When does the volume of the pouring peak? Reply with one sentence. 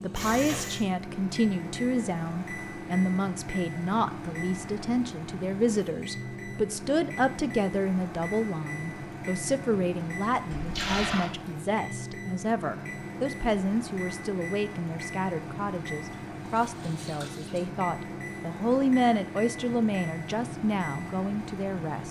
The loudest moment of the pouring is at 11 seconds.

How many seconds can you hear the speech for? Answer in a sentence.
The speech can be heard for 22 seconds in total.